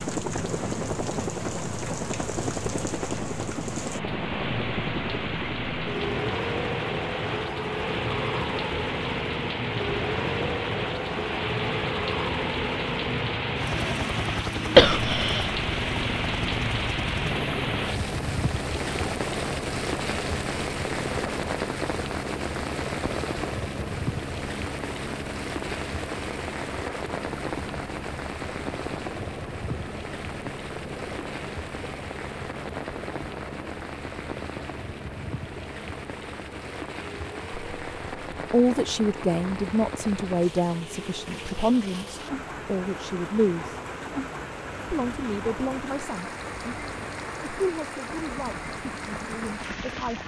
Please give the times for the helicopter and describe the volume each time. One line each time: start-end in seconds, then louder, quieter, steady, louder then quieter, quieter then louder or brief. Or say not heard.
0.0-50.2 quieter.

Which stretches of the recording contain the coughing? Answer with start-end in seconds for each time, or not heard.
14.8-15.5.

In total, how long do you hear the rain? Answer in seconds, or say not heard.
50 s.